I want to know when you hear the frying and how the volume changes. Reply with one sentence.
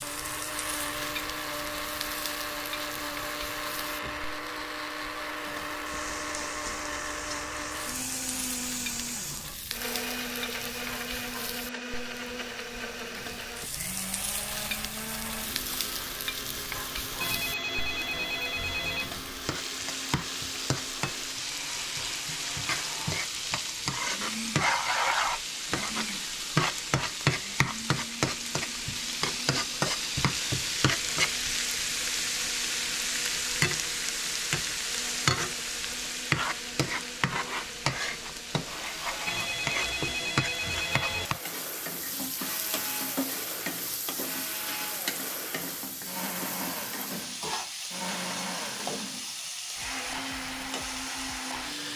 You can hear the frying from 0.0 to 51.9 s, getting louder then quieter.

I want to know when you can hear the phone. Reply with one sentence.
The phone can be heard from 17.2 to 19.1 s and from 39.2 to 41.3 s.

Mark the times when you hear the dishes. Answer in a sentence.
You can't hear the dishes here.